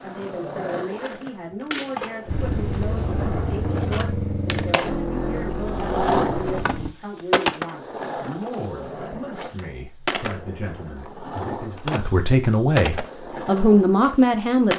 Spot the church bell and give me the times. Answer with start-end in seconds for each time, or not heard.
not heard.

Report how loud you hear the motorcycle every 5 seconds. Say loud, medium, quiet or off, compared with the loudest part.
loud, loud, off.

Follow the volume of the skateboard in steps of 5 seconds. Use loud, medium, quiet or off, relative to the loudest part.
medium, loud, loud.